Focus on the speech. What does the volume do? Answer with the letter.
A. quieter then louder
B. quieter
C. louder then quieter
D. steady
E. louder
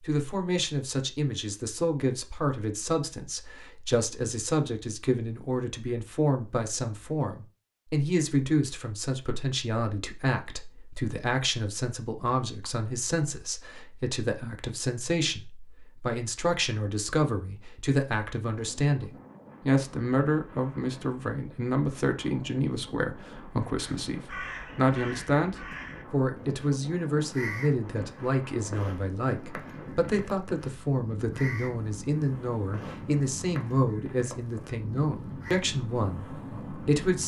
D.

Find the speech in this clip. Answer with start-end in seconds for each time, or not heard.
0.0-37.2.